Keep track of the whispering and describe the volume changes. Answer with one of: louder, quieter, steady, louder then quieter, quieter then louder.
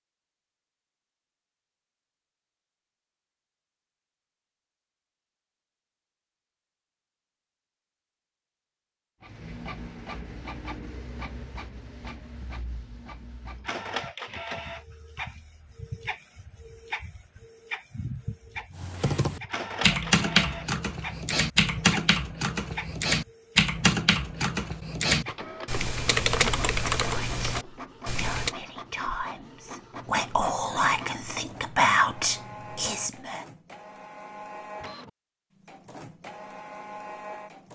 louder.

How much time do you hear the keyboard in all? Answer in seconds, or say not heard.
10 s.